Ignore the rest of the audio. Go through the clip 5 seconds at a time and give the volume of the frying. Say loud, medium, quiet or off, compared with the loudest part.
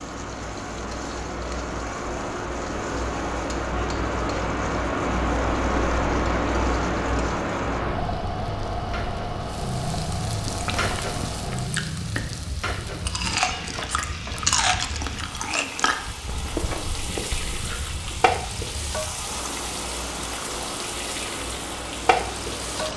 quiet, medium, loud, loud, loud.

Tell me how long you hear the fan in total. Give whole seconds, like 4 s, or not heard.
23 s.